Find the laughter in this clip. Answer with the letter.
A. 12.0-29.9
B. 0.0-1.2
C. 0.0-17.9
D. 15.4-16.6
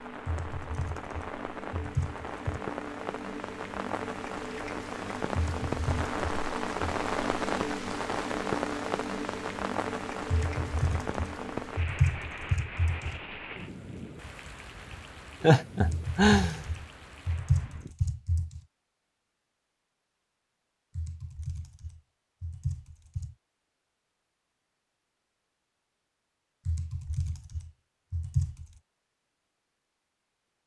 D.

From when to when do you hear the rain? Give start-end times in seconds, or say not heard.
0.0-17.9.